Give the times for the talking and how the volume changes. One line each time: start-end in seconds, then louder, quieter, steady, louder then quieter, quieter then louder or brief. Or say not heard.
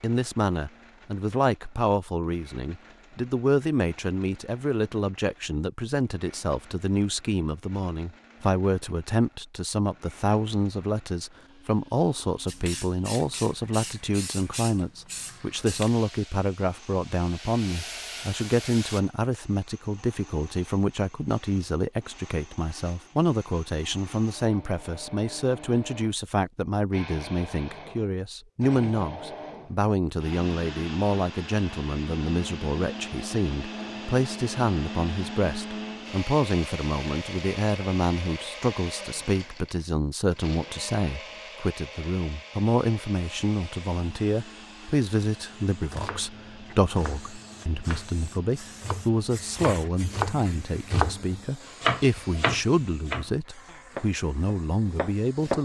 0.0-55.6 steady.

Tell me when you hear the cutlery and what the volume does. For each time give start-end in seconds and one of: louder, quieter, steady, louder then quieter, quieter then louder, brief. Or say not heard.
not heard.